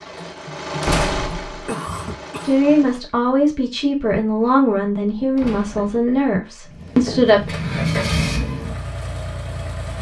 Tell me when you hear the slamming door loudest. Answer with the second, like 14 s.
1 s.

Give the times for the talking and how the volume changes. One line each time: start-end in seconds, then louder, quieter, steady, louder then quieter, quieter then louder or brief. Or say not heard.
2.5-7.5 steady.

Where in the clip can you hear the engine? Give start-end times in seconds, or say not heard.
0.0-3.0, 6.7-9.9.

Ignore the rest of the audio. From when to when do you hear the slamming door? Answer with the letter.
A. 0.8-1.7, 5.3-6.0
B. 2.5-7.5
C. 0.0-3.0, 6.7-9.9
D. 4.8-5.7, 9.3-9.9
A.